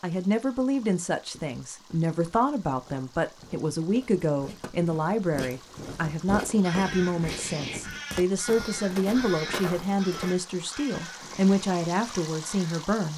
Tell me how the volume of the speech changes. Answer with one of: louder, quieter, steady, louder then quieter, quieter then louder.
steady.